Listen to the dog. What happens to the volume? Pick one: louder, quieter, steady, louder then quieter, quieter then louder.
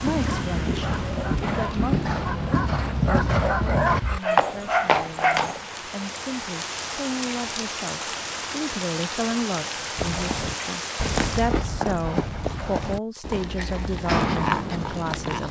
louder.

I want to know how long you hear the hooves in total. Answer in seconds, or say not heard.
11 s.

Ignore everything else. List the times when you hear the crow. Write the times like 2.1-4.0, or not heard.
not heard.